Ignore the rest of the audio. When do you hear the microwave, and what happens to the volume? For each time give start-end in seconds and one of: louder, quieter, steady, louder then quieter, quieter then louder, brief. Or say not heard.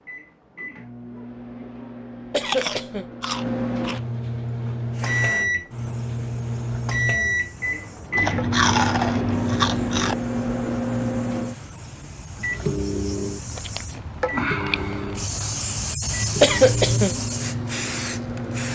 0.0-18.7 louder then quieter.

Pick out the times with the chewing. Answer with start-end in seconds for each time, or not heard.
2.5-4.0, 8.2-10.2, 13.5-15.4.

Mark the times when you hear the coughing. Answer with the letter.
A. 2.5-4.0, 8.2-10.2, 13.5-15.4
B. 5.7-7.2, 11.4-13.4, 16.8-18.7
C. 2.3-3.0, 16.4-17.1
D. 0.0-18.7
C.